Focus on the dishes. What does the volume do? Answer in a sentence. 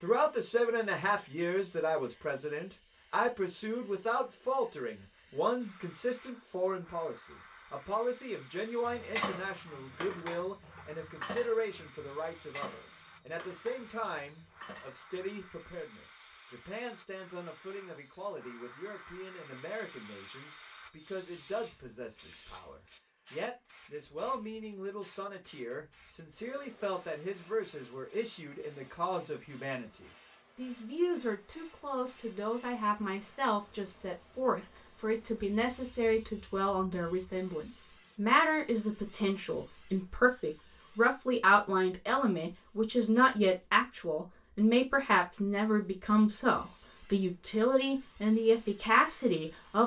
The volume of the dishes goes down.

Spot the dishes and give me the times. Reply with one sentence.
The dishes can be heard from 8.8 to 15.4 s.